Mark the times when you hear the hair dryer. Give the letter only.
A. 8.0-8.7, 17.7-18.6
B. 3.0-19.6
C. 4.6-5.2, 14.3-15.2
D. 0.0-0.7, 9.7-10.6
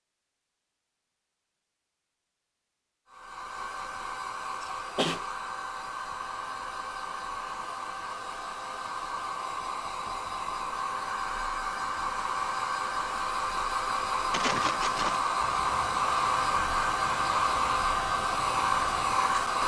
B.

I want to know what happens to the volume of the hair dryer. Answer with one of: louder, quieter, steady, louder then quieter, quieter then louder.
louder.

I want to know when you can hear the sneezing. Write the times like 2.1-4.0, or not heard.
4.6-5.2, 14.3-15.2.